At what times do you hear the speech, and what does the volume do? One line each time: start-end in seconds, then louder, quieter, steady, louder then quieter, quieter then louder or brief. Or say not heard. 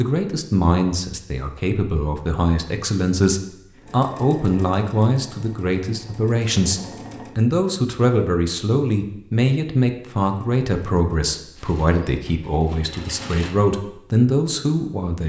0.0-15.2 steady.